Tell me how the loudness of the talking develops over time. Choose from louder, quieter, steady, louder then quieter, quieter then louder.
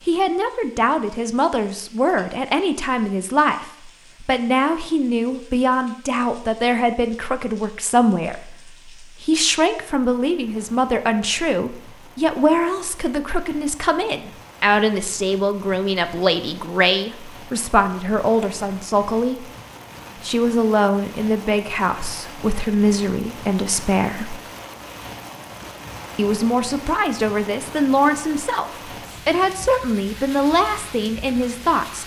steady.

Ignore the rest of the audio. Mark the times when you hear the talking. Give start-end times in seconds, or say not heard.
0.1-19.4, 20.2-24.4, 26.1-32.0.